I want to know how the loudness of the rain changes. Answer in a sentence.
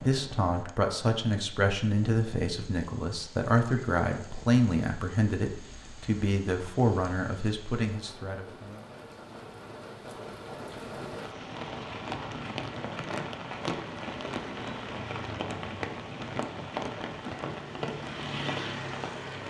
The volume of the rain goes up.